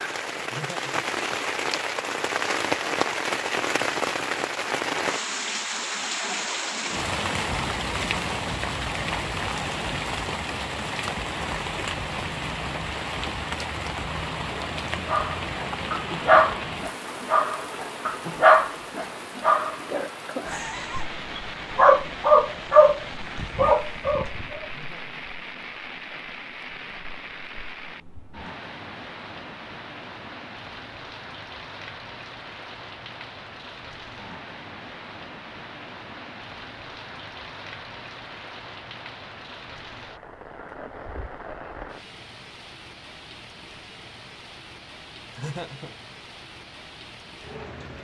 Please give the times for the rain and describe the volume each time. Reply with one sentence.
The rain can be heard from 0.0 to 47.9 s, getting quieter.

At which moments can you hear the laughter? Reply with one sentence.
The laughter can be heard from 0.4 to 1.1 s, from 24.6 to 25.2 s and from 45.3 to 46.0 s.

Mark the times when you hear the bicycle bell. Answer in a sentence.
You can't hear the bicycle bell here.